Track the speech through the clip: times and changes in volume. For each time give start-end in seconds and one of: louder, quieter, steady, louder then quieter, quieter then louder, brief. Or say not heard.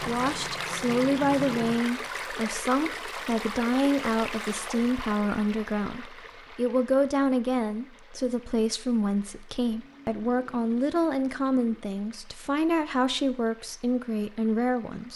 0.0-15.1 steady.